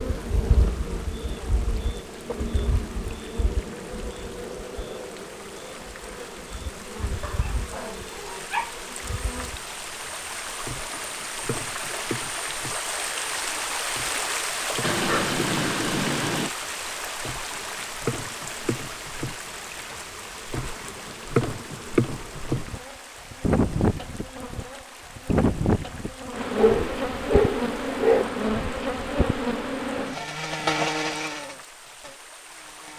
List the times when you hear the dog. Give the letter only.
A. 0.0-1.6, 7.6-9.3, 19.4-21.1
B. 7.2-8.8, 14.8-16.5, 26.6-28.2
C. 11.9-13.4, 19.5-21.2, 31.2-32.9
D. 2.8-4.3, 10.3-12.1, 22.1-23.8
B.